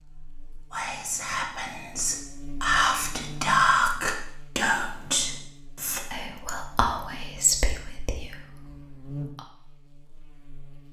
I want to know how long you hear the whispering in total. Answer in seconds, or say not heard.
9 s.